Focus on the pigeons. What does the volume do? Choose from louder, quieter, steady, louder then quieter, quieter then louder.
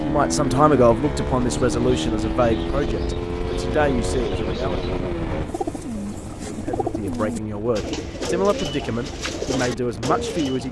louder.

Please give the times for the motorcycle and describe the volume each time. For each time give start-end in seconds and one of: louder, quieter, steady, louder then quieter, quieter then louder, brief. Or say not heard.
0.0-10.6 quieter.